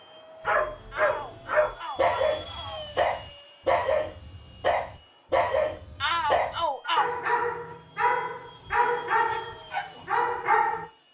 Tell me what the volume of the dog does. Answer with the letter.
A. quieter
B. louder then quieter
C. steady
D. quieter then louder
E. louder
C.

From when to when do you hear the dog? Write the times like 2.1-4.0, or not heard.
0.5-10.8.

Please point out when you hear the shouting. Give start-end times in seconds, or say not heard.
0.9-2.9, 6.0-7.0.